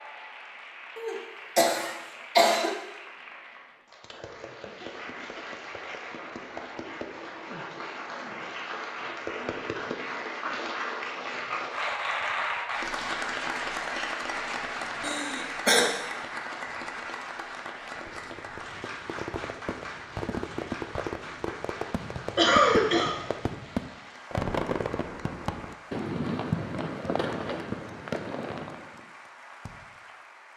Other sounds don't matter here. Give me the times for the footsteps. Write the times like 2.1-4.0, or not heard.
not heard.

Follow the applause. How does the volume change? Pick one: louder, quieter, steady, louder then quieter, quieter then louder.
louder then quieter.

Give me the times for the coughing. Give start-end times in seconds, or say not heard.
0.9-2.8, 15.0-15.9, 22.4-23.1.